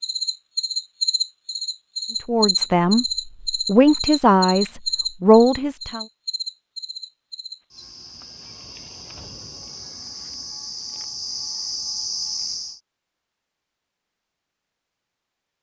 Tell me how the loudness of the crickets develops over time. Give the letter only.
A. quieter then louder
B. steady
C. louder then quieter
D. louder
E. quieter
A.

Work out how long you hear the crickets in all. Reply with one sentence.
The crickets can be heard for 13 seconds in total.